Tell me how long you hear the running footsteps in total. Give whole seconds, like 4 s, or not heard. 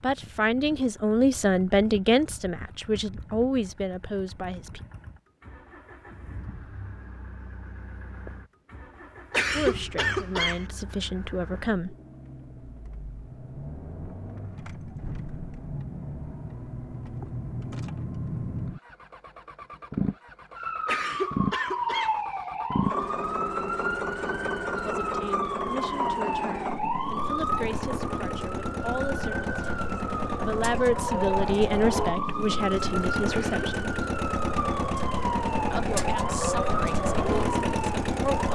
not heard.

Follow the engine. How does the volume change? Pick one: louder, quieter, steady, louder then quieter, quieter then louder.
louder.